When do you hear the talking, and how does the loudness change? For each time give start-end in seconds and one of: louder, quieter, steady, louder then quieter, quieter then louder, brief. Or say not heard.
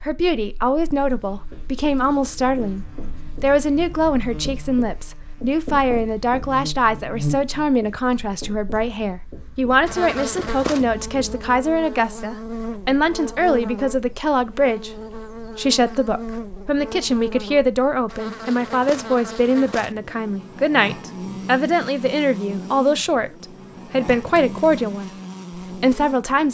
0.0-26.4 steady.